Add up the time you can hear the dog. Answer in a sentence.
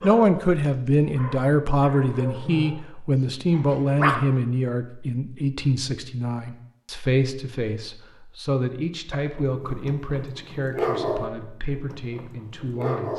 The dog can be heard for 8 seconds in total.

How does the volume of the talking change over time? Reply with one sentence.
The loudness of the talking goes down.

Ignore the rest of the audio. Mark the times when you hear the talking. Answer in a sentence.
The talking can be heard from 0.0 to 13.1 s.